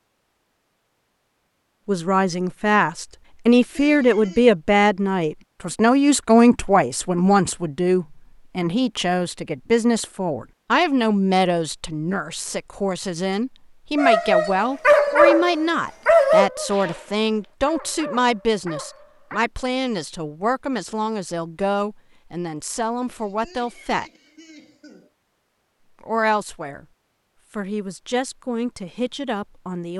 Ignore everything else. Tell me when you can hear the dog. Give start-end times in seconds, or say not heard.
13.9-19.4.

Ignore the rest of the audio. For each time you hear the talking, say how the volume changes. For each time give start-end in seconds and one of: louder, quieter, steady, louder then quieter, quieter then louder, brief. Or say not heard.
1.9-24.1 quieter
26.0-26.9 brief
27.6-29.9 brief.